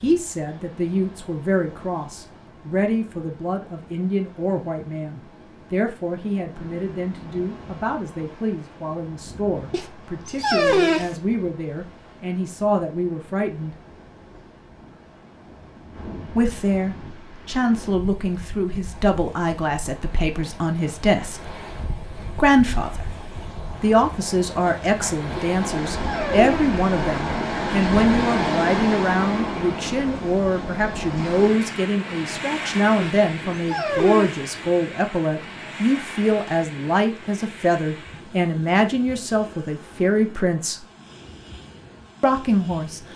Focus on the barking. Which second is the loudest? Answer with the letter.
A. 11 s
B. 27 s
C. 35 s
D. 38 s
A.